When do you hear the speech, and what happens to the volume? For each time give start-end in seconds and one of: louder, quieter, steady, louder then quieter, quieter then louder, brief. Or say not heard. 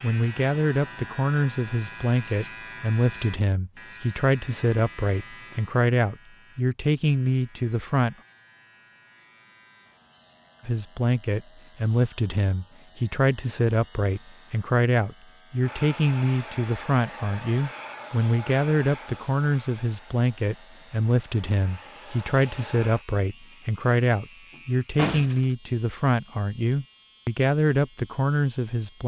0.0-8.2 steady
10.7-29.0 steady.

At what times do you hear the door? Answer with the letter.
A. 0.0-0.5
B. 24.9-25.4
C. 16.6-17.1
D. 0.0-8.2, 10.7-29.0
B.